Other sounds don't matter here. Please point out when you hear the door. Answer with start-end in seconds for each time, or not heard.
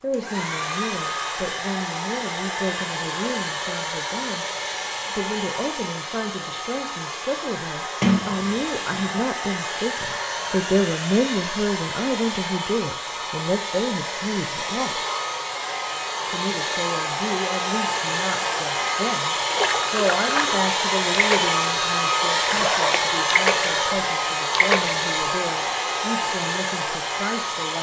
8.0-9.2.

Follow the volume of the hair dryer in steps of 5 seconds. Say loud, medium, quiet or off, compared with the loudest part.
medium, medium, medium, loud, loud, loud.